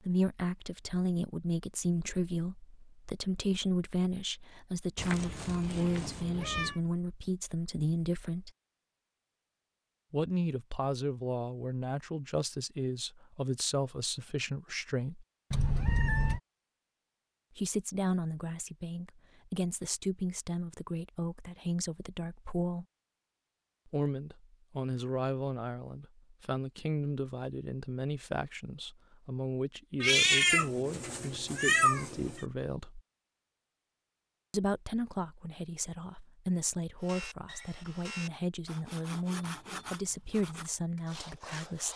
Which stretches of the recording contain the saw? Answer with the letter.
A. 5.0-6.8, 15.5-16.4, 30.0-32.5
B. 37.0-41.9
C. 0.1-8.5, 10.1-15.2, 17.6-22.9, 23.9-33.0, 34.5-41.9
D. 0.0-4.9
B.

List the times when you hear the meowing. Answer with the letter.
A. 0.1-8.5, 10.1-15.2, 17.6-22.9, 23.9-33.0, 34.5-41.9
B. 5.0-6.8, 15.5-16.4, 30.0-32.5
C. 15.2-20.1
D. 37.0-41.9
B.